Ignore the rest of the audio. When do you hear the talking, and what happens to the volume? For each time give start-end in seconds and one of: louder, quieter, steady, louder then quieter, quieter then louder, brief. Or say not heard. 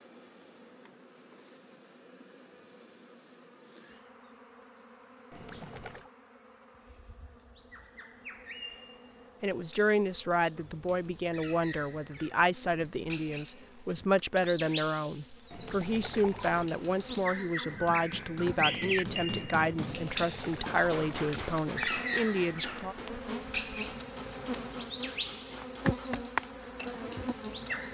9.4-22.9 steady.